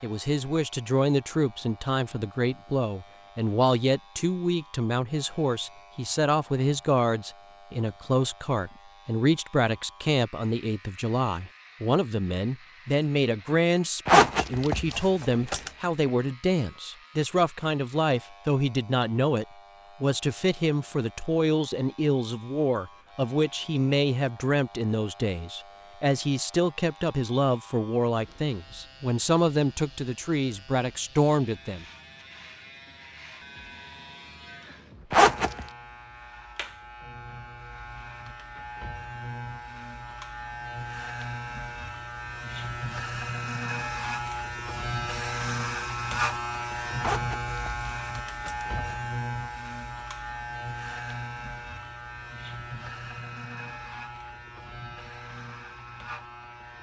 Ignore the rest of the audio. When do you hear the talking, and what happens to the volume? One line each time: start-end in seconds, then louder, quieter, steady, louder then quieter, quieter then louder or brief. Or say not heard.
0.0-31.9 steady.